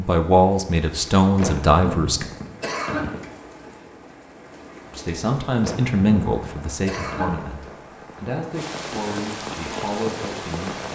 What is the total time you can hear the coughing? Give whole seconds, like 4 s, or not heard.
4 s.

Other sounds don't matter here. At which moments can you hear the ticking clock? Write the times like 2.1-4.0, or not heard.
not heard.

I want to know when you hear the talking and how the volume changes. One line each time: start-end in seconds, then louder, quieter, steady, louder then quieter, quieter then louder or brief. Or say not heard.
0.0-2.2 brief
4.9-10.8 quieter.